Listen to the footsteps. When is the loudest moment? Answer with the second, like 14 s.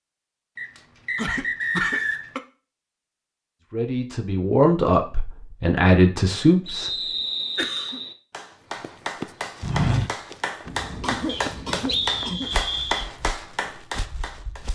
10 s.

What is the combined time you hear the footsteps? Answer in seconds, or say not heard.
6 s.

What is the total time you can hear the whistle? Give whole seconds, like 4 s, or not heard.
5 s.